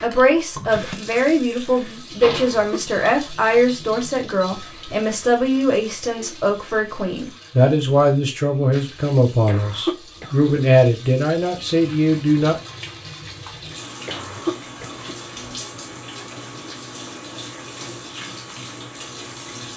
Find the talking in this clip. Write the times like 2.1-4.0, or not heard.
0.0-12.6.